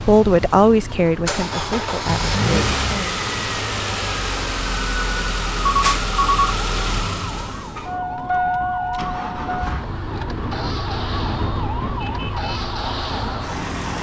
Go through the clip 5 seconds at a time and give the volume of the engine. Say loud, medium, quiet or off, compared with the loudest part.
loud, loud, medium.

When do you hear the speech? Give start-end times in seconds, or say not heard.
0.0-3.1.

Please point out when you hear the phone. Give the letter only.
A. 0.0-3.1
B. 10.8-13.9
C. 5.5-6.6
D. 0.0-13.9
C.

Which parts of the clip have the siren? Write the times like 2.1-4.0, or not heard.
0.0-13.9.